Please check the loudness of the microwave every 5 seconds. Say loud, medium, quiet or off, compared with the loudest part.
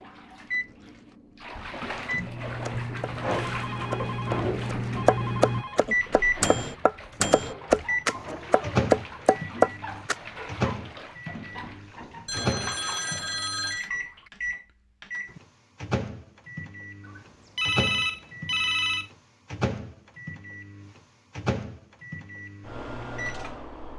medium, loud, medium, medium, medium.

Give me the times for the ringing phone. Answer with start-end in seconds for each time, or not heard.
3.2-5.8, 12.2-13.9, 17.0-19.1.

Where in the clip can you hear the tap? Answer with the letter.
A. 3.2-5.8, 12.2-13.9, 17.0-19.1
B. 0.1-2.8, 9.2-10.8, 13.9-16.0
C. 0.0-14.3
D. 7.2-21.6
C.